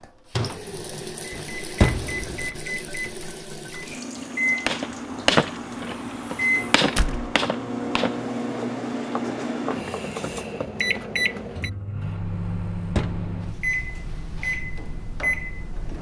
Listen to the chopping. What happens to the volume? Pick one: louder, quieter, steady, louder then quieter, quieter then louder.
quieter.